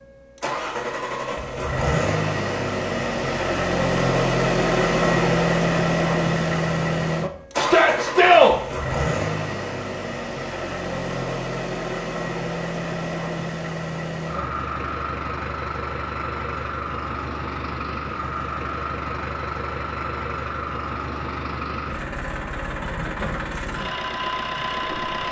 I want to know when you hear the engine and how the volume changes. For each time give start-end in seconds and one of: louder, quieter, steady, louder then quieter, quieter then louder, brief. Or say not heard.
0.0-25.2 quieter.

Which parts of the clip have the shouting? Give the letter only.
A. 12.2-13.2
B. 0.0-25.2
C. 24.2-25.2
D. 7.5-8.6
D.